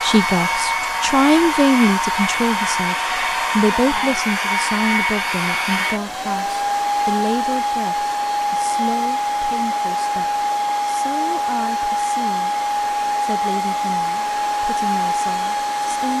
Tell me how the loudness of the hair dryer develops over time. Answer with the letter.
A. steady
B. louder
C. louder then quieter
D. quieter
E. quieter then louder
A.